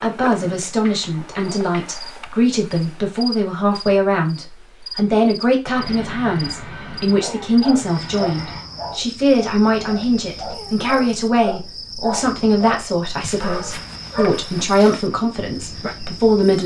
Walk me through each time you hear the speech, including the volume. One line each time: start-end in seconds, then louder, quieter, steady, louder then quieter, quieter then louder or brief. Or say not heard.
0.0-16.6 steady.